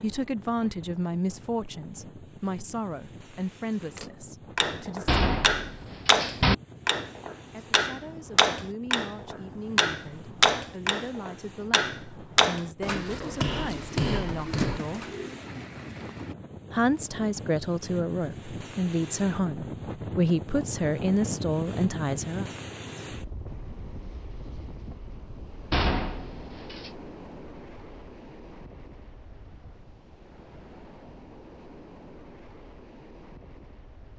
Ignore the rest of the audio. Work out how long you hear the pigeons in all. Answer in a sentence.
You can hear the pigeons for 3 seconds altogether.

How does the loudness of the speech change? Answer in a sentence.
The loudness of the speech goes down, then up.